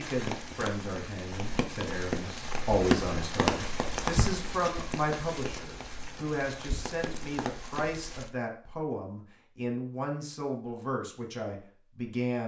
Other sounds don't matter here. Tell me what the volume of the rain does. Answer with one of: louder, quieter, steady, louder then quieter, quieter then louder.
louder then quieter.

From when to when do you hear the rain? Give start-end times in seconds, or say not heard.
0.0-8.3.